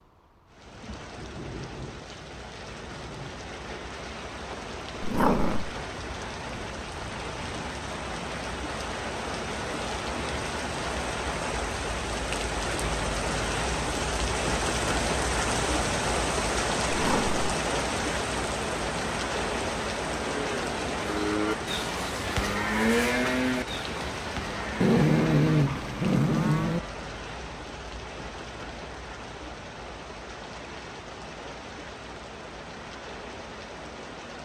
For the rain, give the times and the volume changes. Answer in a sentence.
The rain can be heard from 0.0 to 34.4 s, getting louder then quieter.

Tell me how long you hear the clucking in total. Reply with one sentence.
The clucking can't be heard in this clip.